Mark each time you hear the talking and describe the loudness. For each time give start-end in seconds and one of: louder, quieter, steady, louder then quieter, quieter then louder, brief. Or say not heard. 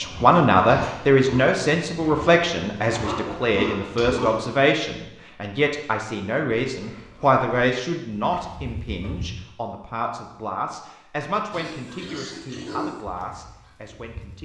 0.0-14.3 quieter.